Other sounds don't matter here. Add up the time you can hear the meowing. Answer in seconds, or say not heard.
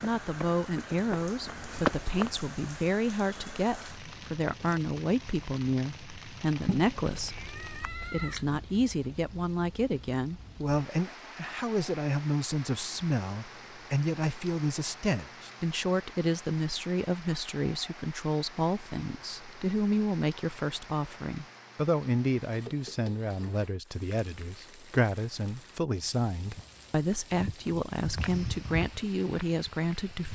2 s.